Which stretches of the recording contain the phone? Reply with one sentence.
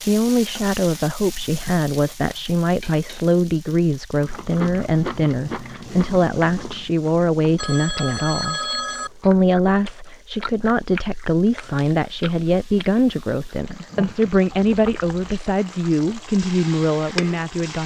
You can hear the phone from 7.5 to 9.1 s.